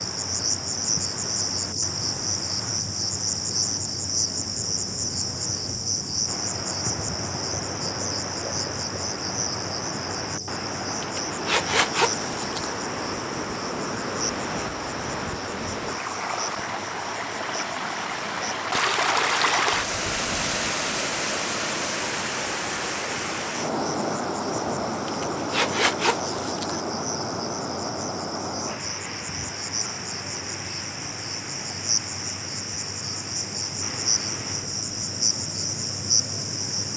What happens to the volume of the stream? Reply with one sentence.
The loudness of the stream goes up, then down.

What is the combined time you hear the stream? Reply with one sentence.
The stream can be heard for 37 seconds in total.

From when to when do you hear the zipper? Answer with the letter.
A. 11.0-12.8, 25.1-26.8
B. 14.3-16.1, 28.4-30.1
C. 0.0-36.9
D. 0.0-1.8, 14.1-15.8
A.